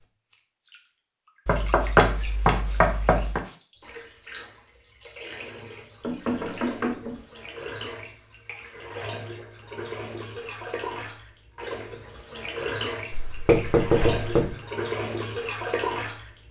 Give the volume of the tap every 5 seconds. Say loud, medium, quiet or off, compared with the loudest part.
quiet, medium, loud, loud.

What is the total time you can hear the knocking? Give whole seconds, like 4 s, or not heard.
5 s.